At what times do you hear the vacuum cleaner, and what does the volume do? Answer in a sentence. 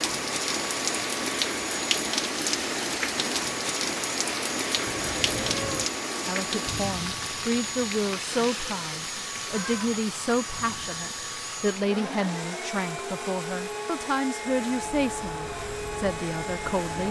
The vacuum cleaner can be heard from 0.0 to 17.0 s, at a steady volume.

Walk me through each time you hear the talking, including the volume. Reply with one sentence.
The talking can be heard from 6.2 to 17.0 s, at a steady volume.